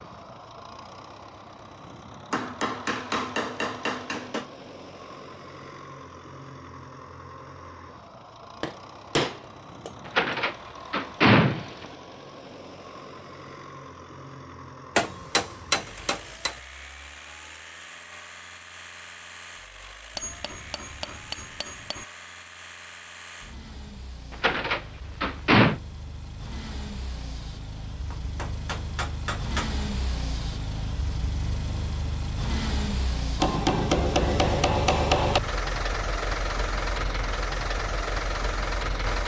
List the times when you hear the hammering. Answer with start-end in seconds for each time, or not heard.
2.3-4.5, 8.6-10.3, 14.9-16.6, 20.1-22.1, 28.1-29.7, 33.4-35.4.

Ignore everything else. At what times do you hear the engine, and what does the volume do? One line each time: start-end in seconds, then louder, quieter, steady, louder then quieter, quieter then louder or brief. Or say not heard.
0.0-39.2 louder.